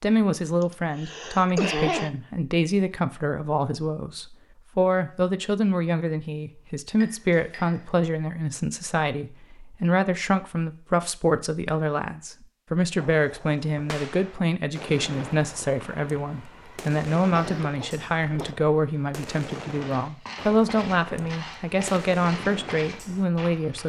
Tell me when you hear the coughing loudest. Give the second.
2 s.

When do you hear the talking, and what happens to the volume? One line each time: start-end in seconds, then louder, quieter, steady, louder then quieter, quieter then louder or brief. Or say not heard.
0.0-23.8 steady.